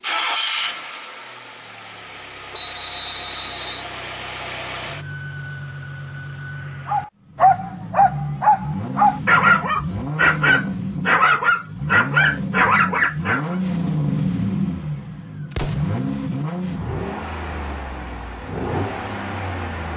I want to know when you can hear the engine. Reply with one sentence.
You can hear the engine from 0.0 to 19.9 s.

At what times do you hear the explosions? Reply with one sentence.
You can hear the explosions from 15.5 to 16.0 s.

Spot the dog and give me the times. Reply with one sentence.
The dog can be heard from 6.8 to 13.6 s.